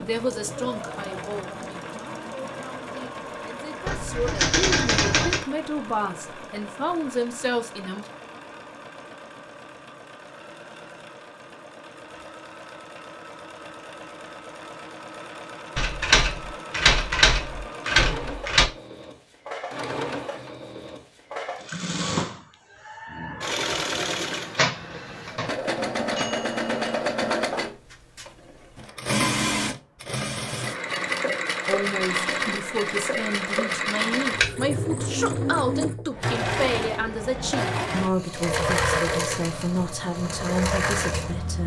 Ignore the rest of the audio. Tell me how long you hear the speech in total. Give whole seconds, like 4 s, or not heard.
18 s.